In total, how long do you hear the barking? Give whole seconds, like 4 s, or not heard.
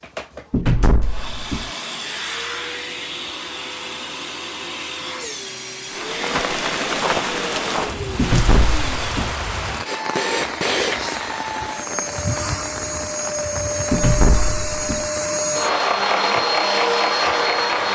not heard.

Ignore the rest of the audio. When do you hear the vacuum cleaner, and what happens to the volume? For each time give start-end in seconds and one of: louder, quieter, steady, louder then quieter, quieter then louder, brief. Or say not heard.
0.0-17.9 louder.